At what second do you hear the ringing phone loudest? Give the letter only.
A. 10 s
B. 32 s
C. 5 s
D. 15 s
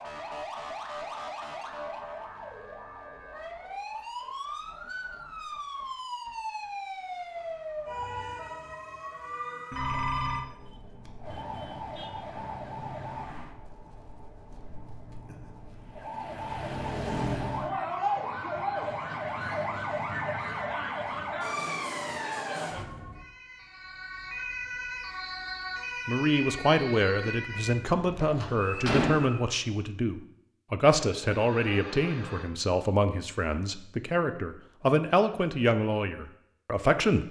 A.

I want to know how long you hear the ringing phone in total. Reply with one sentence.
You can hear the ringing phone for 2 seconds altogether.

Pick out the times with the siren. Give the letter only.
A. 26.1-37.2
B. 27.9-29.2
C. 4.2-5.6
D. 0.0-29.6
D.